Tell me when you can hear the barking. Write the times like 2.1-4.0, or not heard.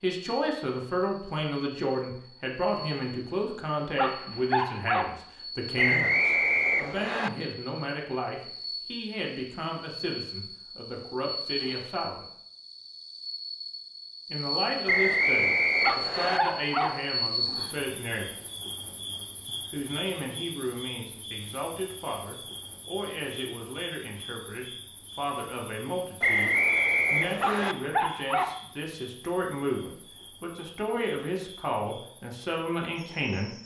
4.0-5.2, 15.8-17.0, 27.4-28.6.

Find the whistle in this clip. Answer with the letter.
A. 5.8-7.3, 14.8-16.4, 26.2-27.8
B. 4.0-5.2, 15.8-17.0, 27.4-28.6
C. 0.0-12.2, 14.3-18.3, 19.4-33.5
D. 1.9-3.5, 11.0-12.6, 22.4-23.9
A.